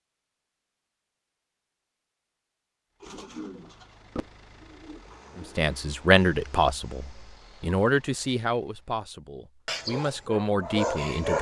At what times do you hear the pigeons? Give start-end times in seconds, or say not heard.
3.0-5.5.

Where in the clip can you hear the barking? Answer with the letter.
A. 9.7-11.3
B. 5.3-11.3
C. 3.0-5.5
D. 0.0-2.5
A.